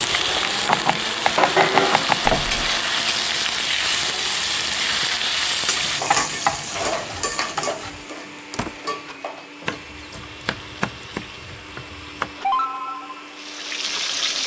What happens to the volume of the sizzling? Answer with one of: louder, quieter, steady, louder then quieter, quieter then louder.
quieter then louder.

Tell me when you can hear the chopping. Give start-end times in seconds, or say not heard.
0.7-2.4, 6.1-8.0, 9.7-12.3.